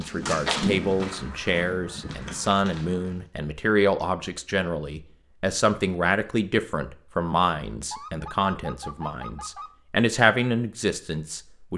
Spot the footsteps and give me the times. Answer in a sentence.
You can hear the footsteps from 0.0 to 3.2 s.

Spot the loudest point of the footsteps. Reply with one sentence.
The loudest moment of the footsteps is at 1 second.